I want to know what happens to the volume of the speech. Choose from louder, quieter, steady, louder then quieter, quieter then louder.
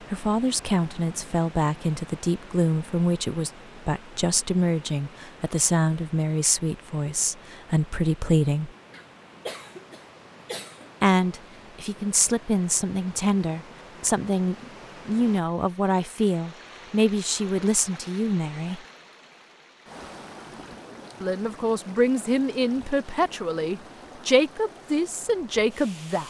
steady.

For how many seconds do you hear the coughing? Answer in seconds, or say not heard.
2 s.